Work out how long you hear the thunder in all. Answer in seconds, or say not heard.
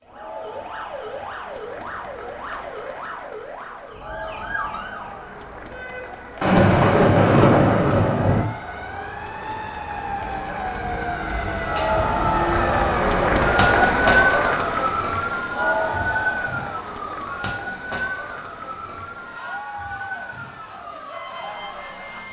2 s.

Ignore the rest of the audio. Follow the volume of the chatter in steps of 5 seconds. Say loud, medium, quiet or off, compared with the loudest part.
quiet, quiet, loud, medium, quiet.